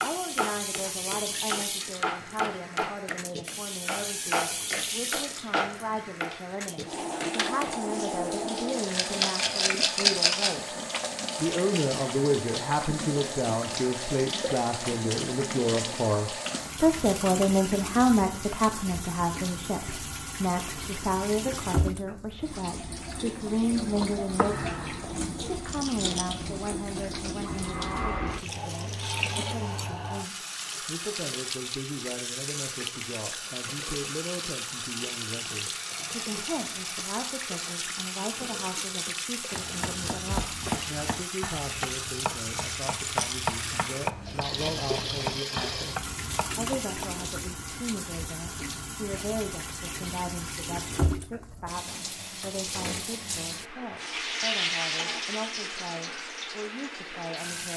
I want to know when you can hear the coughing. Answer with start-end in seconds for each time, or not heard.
not heard.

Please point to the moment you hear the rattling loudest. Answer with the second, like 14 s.
10 s.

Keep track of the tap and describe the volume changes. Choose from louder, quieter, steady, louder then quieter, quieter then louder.
steady.